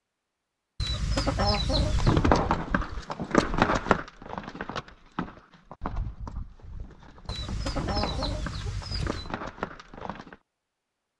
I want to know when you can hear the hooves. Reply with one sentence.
The hooves can be heard from 1.8 to 10.3 s.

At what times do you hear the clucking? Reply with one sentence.
You can hear the clucking from 0.8 to 2.3 s and from 7.2 to 9.3 s.